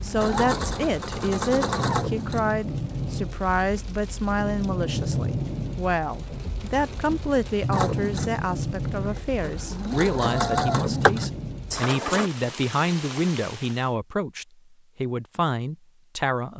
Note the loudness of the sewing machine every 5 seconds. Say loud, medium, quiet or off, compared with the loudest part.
loud, medium, loud, off.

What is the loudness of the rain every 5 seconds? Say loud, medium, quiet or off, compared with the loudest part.
loud, loud, loud, off.